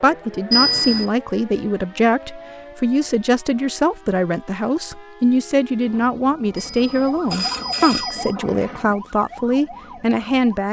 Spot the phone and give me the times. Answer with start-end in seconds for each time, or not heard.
0.5-1.1, 6.5-8.3.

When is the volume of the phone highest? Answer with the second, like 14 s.
1 s.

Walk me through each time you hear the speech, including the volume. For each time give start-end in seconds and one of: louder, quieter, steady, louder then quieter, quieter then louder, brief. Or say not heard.
0.0-10.6 steady.